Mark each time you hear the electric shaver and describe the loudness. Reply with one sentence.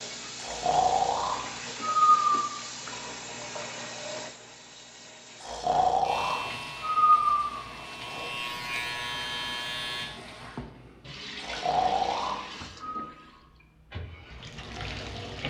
You can hear the electric shaver from 6.0 to 10.1 s, getting quieter then louder.